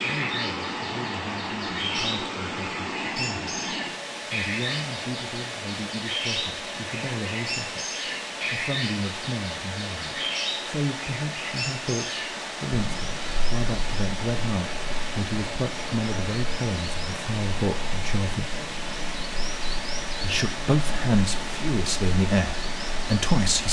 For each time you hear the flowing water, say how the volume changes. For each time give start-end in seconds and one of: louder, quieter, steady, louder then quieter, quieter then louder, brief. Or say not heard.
0.0-23.6 steady.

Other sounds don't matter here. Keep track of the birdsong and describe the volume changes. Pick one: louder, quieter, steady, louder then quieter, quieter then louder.
quieter.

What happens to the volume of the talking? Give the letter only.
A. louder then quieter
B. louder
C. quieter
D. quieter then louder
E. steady
B.